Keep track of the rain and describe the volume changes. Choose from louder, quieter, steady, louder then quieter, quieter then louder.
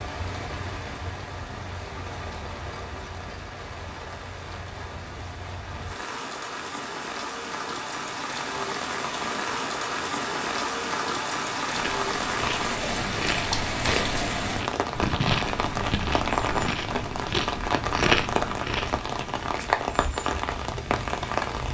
louder.